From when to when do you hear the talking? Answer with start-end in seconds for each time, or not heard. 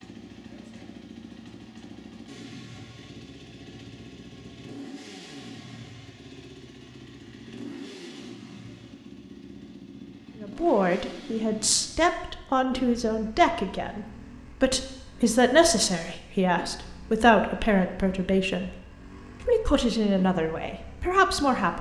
10.4-18.7, 19.4-21.7.